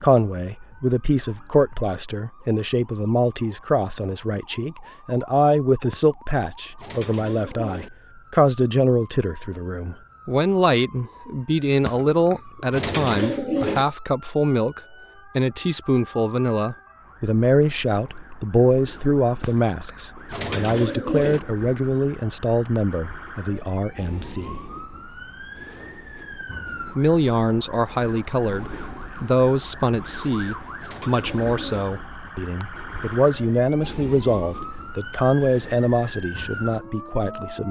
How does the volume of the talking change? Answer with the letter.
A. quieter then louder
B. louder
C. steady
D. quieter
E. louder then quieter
C.